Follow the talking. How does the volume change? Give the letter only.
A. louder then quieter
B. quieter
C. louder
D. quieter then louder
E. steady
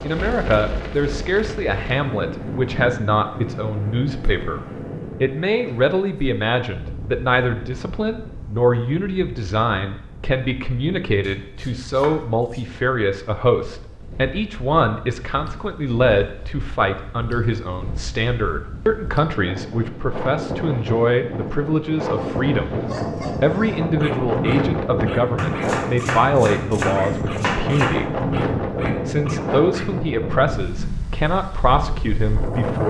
E.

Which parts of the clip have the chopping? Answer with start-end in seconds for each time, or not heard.
11.2-12.7, 25.4-28.1.